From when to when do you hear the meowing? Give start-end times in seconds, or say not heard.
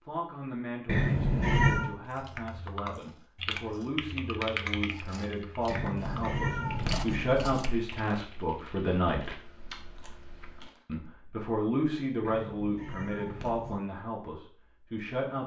0.8-1.9, 5.7-7.5, 12.2-13.8.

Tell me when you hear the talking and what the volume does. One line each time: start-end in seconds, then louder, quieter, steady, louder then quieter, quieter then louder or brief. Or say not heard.
0.1-9.3 louder
10.8-15.4 quieter.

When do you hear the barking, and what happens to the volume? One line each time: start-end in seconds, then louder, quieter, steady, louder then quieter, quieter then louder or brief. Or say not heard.
not heard.